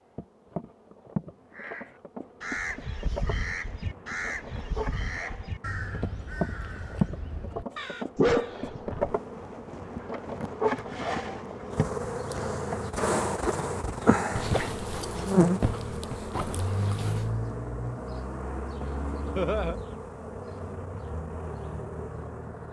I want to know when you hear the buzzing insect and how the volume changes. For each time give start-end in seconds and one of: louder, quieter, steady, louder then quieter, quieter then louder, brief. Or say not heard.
0.1-22.6 louder then quieter.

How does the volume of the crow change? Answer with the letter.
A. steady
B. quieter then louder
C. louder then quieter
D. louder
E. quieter
E.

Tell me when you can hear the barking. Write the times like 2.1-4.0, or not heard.
8.2-9.2, 14.3-17.3.